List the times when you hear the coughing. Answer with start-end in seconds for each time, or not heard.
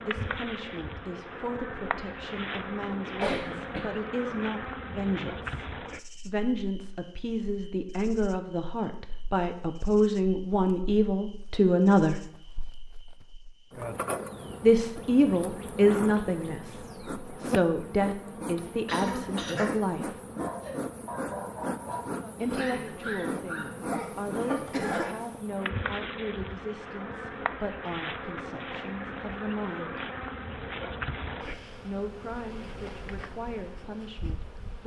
3.0-3.9, 18.9-19.6, 24.4-25.1.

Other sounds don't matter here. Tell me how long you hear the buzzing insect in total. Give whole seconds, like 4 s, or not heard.
35 s.